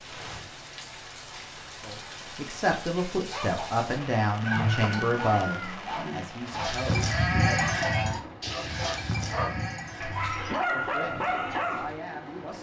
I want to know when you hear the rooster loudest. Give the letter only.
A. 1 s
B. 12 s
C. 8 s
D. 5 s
D.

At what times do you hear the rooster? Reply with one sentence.
The rooster can be heard from 4.4 to 6.2 s.